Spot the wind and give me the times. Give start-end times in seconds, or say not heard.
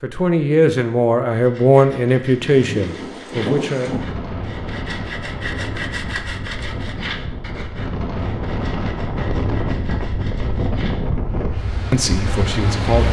2.4-13.0.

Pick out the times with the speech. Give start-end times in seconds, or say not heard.
0.0-4.0, 11.9-13.0.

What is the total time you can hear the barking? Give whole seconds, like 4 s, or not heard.
not heard.